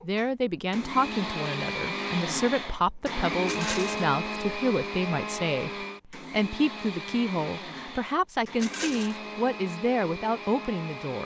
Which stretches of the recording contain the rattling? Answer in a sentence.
The rattling can be heard from 3.5 to 4.0 s and from 8.6 to 9.2 s.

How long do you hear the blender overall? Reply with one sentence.
You can hear the blender for 11 seconds altogether.